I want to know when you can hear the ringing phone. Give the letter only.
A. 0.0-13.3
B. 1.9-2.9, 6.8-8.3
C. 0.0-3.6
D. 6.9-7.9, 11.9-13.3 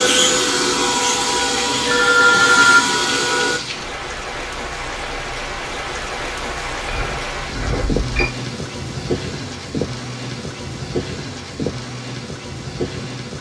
B.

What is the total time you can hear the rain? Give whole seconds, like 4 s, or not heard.
13 s.